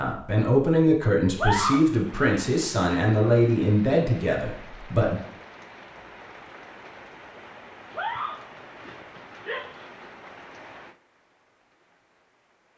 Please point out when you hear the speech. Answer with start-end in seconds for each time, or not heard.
0.0-5.2.